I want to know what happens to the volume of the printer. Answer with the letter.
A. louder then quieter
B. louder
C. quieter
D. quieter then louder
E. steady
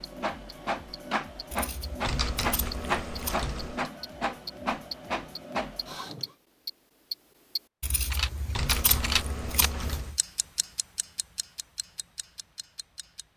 E.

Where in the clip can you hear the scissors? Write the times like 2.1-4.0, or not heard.
1.5-3.4, 7.8-10.2.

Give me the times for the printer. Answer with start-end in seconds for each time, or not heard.
0.0-6.3.